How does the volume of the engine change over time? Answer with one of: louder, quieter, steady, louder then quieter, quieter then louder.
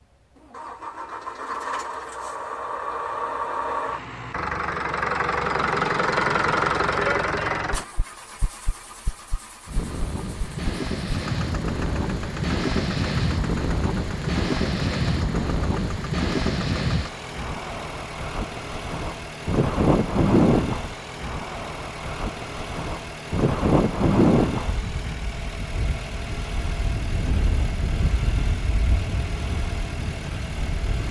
quieter.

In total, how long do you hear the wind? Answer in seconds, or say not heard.
21 s.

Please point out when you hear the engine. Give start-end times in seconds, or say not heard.
0.0-31.0.